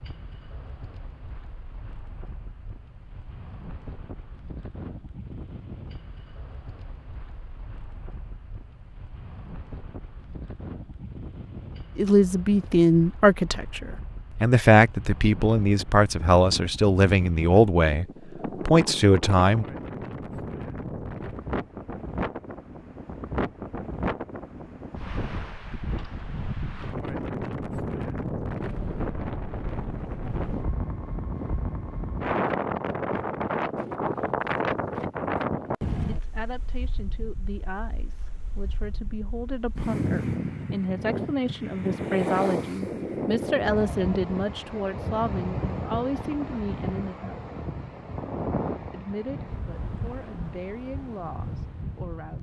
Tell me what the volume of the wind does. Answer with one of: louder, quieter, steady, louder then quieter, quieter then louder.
louder.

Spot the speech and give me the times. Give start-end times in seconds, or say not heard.
11.9-19.6, 36.0-47.4, 48.9-52.3.